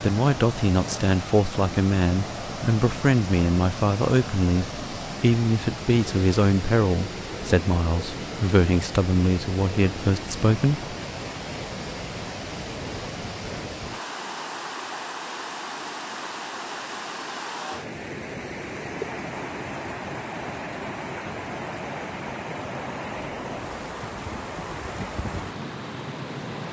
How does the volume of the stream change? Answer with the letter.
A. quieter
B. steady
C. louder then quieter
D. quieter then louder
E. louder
B.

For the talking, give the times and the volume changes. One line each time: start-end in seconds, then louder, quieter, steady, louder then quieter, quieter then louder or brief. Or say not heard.
0.0-10.9 steady.